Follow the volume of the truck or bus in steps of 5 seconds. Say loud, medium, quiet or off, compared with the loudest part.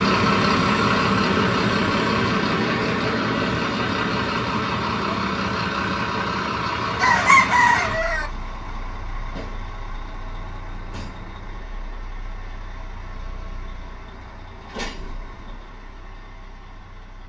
loud, medium, quiet, quiet.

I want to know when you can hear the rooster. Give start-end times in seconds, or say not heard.
7.0-8.3.